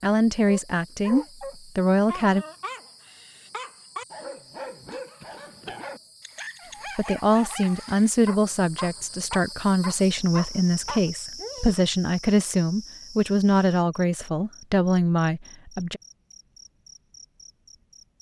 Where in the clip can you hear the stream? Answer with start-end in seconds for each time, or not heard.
not heard.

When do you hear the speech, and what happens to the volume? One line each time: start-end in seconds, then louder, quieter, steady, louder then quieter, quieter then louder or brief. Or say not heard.
0.0-2.5 brief
7.0-16.0 steady.